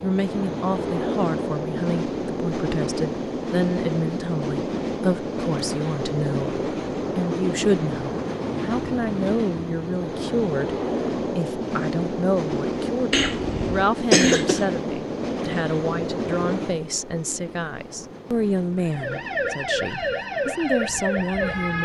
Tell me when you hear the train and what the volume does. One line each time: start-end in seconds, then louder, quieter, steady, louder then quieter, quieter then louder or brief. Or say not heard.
0.0-21.8 quieter.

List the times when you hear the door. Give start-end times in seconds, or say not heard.
not heard.